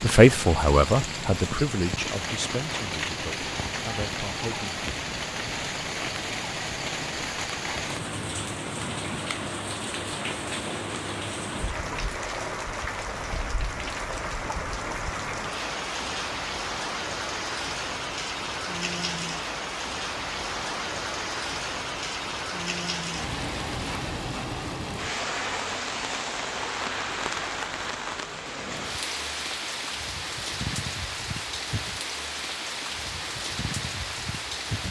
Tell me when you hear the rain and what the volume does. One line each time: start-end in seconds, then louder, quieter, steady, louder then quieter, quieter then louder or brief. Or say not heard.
0.0-34.8 steady.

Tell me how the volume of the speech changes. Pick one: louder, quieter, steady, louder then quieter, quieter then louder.
quieter then louder.